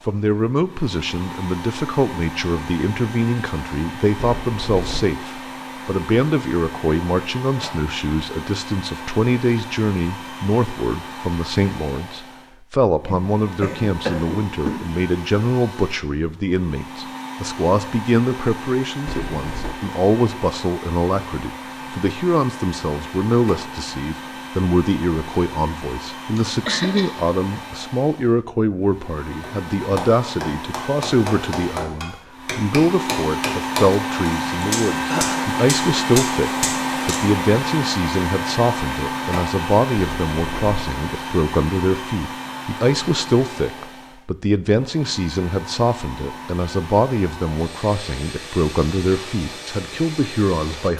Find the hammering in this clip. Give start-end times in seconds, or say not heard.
29.4-37.2.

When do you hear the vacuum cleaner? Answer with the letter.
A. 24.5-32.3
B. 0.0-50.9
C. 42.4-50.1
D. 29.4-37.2
B.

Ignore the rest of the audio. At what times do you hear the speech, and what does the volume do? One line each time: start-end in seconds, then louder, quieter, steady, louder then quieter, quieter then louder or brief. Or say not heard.
0.1-50.9 steady.